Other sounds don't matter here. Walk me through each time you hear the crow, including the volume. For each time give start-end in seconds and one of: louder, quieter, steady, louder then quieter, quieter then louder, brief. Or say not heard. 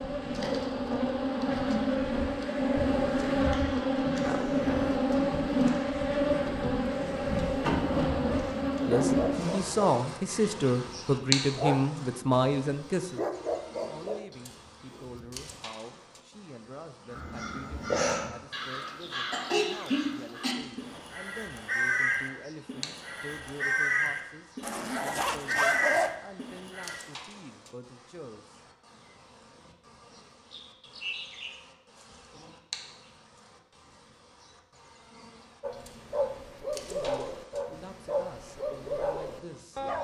17.1-27.0 steady.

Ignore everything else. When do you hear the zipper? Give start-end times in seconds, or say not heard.
4.2-5.0, 24.6-26.1.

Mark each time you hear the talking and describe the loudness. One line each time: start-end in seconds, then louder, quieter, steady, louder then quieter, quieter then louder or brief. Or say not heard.
8.8-28.6 quieter
36.9-39.8 brief.